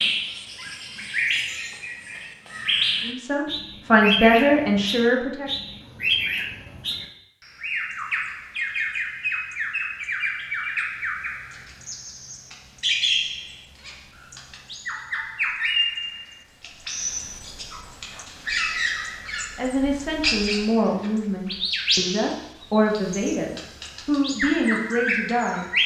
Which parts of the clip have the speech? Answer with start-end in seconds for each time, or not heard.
3.0-5.5, 19.6-25.6.